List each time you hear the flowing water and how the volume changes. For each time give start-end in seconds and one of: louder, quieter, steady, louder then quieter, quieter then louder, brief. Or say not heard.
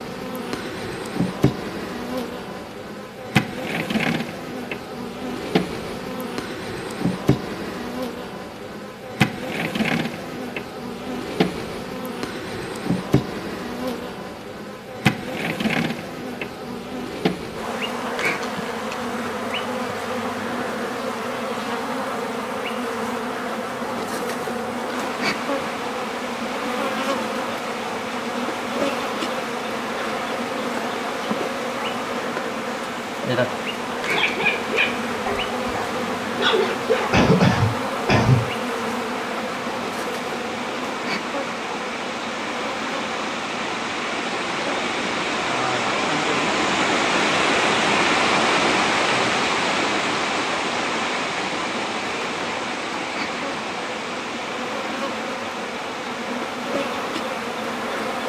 24.9-58.2 louder then quieter.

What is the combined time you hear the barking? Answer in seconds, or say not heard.
3 s.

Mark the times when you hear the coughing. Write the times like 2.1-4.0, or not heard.
37.1-38.4.